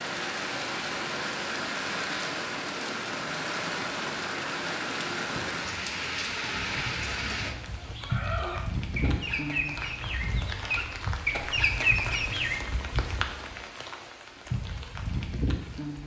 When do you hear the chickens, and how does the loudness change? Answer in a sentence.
You can hear the chickens from 6.5 to 12.6 s, getting louder.